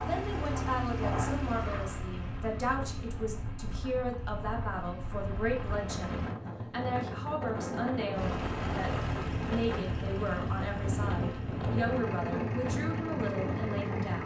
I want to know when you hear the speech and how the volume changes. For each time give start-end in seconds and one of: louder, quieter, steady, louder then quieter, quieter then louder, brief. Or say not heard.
0.0-14.2 steady.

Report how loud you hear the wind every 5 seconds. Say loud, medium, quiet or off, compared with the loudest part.
medium, loud, loud.